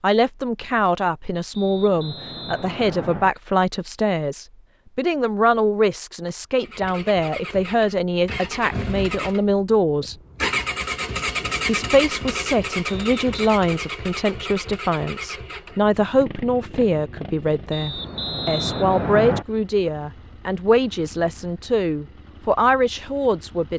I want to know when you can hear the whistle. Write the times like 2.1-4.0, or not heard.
1.5-3.3, 12.8-13.5, 17.7-19.4.